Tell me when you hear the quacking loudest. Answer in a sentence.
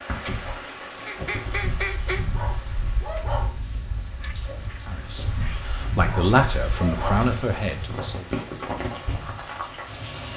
The volume of the quacking peaks at 2 seconds.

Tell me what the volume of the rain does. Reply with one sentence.
The loudness of the rain goes down, then up.